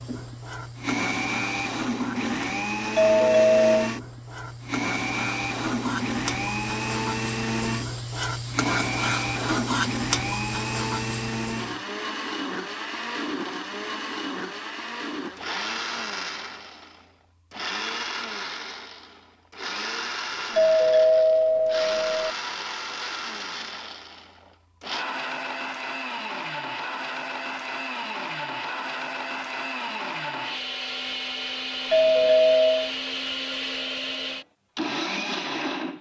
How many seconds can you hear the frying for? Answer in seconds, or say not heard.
12 s.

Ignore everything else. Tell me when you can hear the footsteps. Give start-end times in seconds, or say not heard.
not heard.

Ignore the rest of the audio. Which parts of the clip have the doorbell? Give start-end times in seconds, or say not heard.
3.0-3.9, 20.6-22.3, 31.9-32.9.